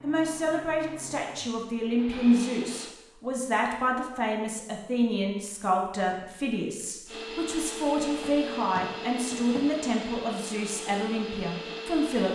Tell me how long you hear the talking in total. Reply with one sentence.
The talking can be heard for 12 seconds in total.